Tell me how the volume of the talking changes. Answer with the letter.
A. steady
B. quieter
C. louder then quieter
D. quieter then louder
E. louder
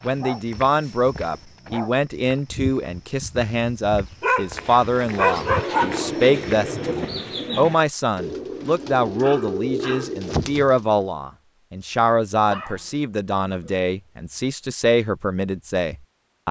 A.